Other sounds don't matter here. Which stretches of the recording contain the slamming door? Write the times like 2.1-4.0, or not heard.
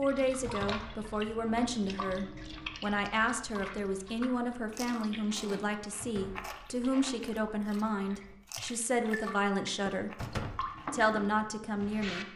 0.5-0.9, 6.0-6.5, 10.2-10.7.